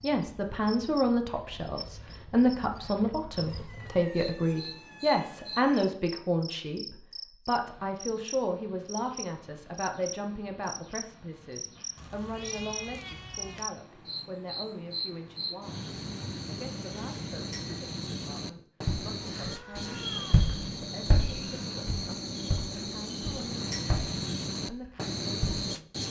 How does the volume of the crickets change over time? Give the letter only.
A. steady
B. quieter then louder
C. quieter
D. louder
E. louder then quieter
D.